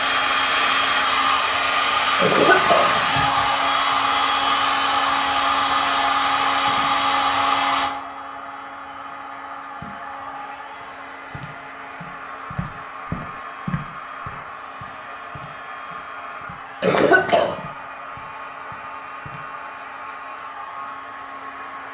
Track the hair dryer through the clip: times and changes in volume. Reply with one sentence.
The hair dryer can be heard from 0.0 to 21.8 s, getting quieter.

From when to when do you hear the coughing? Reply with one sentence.
The coughing can be heard from 2.2 to 3.4 s and from 16.8 to 17.6 s.